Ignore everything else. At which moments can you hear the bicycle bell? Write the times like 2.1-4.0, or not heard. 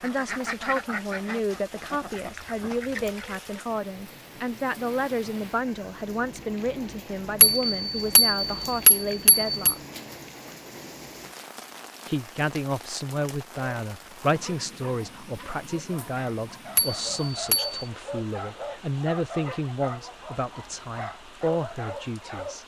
7.4-9.8, 16.8-17.9.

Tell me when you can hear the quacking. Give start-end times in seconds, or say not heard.
0.0-3.4.